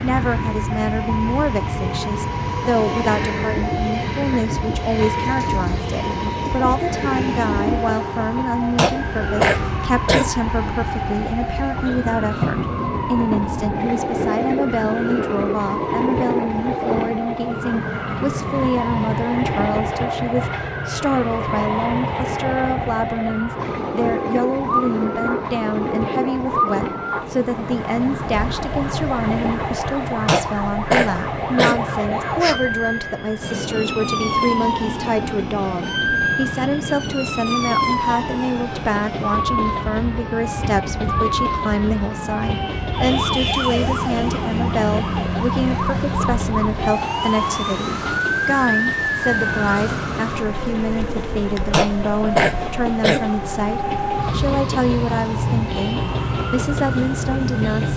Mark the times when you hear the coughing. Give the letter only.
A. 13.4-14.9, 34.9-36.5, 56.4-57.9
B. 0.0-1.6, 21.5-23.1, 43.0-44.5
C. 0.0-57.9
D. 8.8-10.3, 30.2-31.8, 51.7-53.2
D.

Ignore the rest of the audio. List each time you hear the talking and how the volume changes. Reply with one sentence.
You can hear the talking from 0.0 to 57.9 s, at a steady volume.